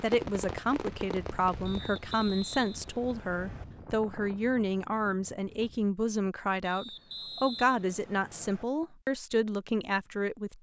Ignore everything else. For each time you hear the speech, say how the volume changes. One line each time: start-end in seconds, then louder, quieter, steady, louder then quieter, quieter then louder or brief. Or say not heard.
0.0-10.5 steady.